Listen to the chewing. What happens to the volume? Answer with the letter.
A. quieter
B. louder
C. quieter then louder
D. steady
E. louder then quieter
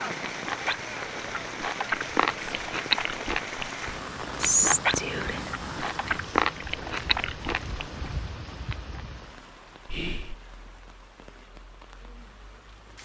D.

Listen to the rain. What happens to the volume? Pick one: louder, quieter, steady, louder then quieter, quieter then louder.
quieter.